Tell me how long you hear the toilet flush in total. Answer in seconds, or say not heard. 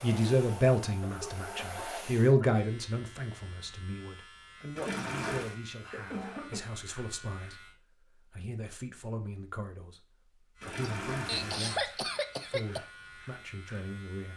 2 s.